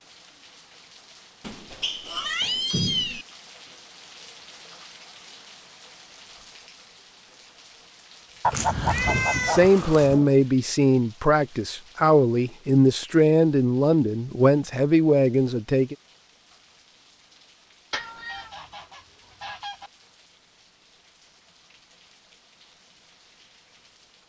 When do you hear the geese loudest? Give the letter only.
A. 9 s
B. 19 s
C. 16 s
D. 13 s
A.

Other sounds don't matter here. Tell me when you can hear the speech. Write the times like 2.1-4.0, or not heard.
9.0-15.9.